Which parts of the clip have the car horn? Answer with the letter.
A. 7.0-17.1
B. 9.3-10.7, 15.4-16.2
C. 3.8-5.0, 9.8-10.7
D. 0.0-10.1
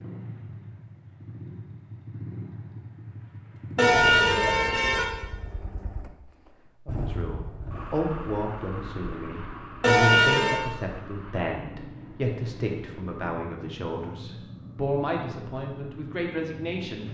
C.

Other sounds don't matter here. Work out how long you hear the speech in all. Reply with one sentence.
You can hear the speech for 10 seconds altogether.